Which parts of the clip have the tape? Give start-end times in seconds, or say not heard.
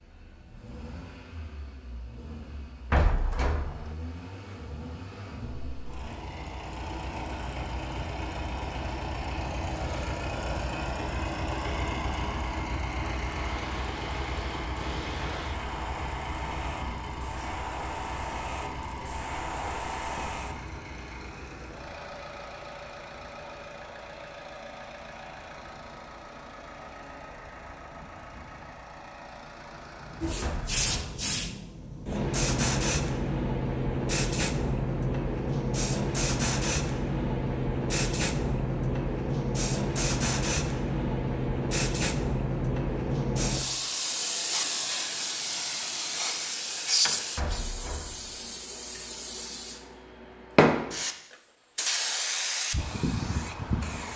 not heard.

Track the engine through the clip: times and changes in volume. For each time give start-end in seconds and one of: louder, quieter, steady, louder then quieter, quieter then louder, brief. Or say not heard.
0.0-30.9 louder then quieter.